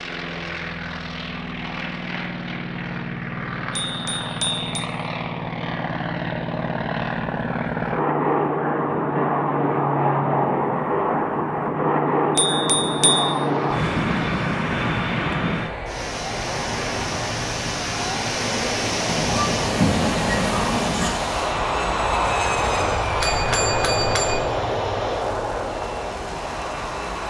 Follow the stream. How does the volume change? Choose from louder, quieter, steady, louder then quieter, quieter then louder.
louder then quieter.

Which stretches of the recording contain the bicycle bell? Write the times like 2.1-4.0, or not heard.
3.7-4.8, 12.3-13.3, 23.2-24.4.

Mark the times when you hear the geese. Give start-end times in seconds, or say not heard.
19.1-21.1.